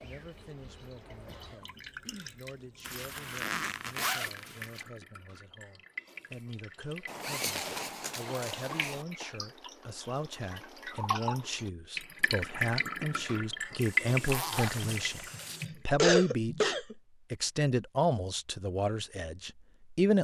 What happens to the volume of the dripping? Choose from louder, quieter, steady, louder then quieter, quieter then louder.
louder.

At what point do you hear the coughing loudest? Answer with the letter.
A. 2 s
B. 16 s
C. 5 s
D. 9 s
B.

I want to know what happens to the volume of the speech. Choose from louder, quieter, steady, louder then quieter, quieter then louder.
louder.